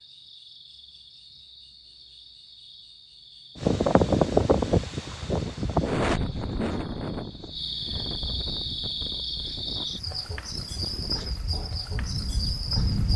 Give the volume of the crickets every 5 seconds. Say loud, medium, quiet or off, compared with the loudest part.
quiet, loud, loud.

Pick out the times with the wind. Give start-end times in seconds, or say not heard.
3.5-13.1.